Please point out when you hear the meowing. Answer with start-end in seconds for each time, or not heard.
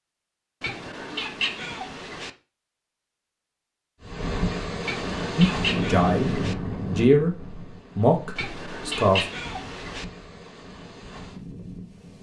0.6-2.3, 4.8-6.5, 8.3-10.1.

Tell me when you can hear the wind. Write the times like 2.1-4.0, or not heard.
4.0-12.1.